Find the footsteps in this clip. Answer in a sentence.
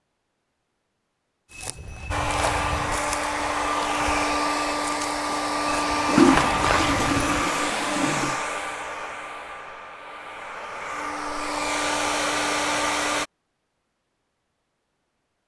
The footsteps can be heard from 1.5 to 7.5 s.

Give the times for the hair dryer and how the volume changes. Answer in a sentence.
The hair dryer can be heard from 2.1 to 13.2 s, getting quieter then louder.